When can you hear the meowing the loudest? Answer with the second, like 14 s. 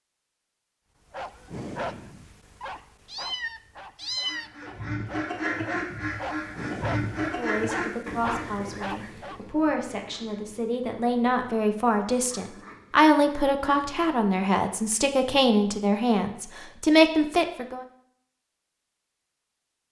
4 s.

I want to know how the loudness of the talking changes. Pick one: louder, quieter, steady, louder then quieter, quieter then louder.
louder.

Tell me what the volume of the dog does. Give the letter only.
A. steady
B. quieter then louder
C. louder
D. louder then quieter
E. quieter
B.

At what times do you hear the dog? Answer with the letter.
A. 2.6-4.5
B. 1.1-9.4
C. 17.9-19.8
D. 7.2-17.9
B.